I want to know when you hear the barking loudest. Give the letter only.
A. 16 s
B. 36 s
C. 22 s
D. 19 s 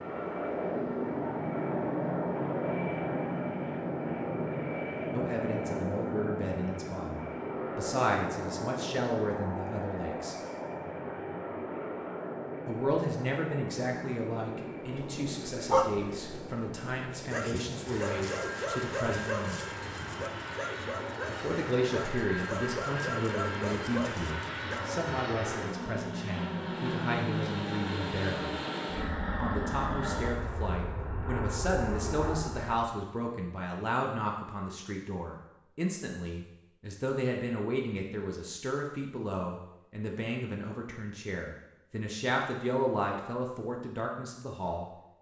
A.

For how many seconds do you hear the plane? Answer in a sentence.
You can hear the plane for 33 seconds altogether.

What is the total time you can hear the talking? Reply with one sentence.
The talking can be heard for 35 seconds in total.